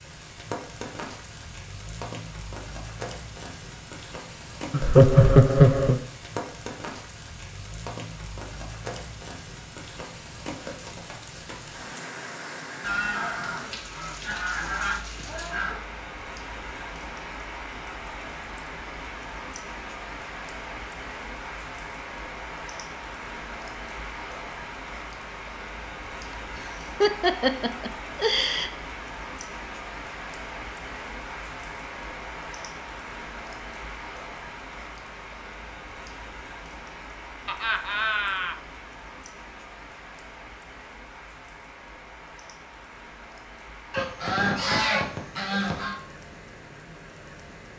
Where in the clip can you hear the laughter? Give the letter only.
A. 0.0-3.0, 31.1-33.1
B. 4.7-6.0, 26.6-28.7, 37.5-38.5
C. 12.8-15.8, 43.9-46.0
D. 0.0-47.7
B.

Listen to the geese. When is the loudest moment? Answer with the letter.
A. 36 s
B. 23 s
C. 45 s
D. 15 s
C.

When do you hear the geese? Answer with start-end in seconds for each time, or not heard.
12.8-15.8, 43.9-46.0.